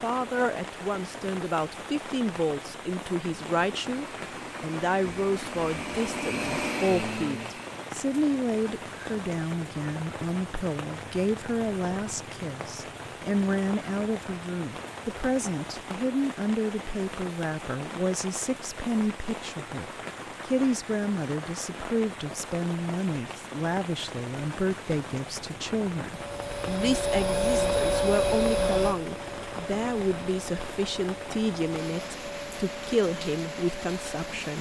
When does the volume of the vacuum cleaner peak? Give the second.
28 s.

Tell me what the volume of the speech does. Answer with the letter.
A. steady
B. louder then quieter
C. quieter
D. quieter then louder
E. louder
A.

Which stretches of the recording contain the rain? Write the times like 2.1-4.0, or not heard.
0.0-34.5.